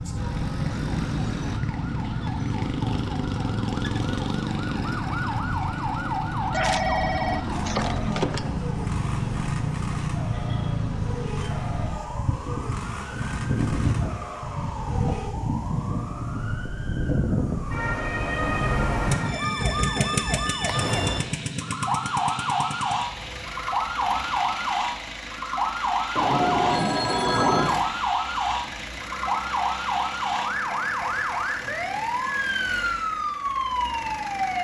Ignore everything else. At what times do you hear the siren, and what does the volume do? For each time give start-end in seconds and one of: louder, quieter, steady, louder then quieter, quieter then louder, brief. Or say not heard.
0.0-34.5 steady.